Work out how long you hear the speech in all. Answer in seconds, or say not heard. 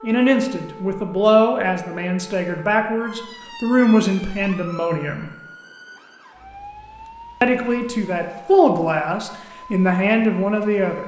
9 s.